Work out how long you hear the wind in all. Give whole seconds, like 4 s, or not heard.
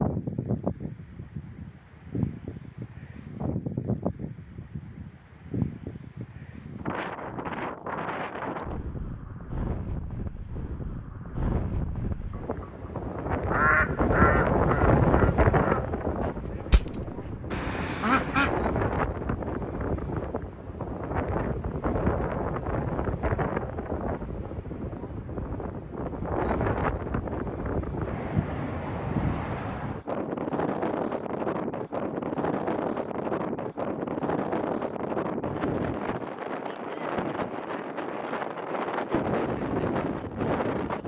41 s.